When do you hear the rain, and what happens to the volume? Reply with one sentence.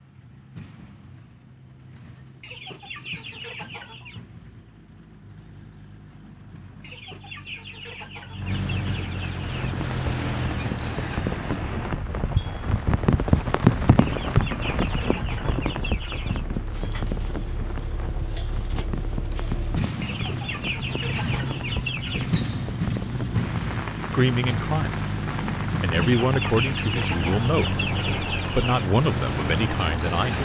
The rain can be heard from 9.5 to 30.4 s, getting quieter.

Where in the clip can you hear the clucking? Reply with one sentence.
The clucking can be heard from 2.4 to 4.2 s, from 6.8 to 9.8 s, from 13.9 to 16.4 s, from 20.0 to 22.3 s and from 25.9 to 28.9 s.